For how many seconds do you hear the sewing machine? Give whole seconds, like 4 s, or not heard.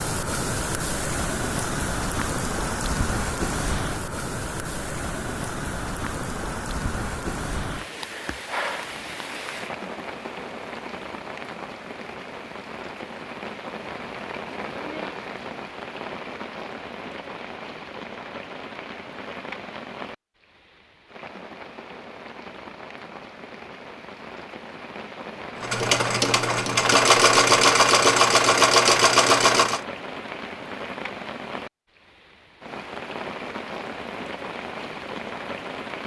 4 s.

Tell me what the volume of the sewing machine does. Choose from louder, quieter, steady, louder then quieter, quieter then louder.
louder.